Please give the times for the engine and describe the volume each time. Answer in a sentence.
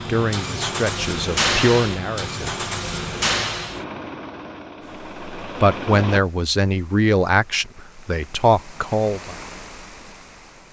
The engine can be heard from 0.0 to 6.2 s, getting quieter.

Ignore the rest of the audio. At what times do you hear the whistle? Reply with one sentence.
You can't hear the whistle here.